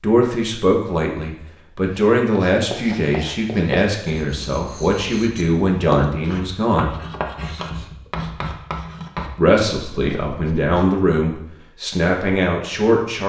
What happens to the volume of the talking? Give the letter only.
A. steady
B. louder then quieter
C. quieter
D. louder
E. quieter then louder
A.